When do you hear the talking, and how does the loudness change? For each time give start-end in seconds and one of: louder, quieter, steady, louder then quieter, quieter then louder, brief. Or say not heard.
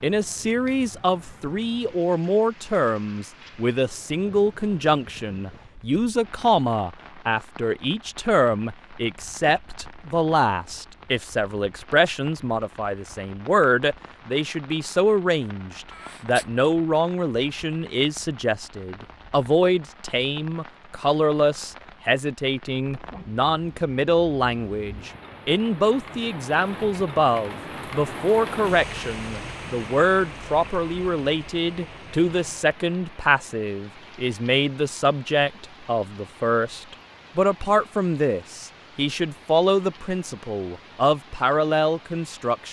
0.0-42.6 steady.